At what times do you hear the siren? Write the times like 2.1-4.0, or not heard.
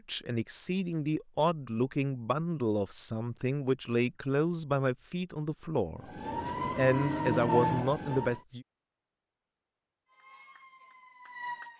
6.0-8.4, 10.1-11.7.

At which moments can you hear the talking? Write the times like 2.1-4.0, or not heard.
0.1-8.7.